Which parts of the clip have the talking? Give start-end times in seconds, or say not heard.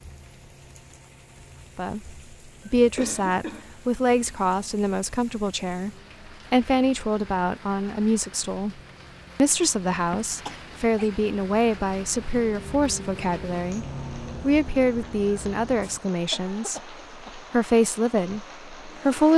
1.8-5.9, 6.5-8.8, 9.3-19.3.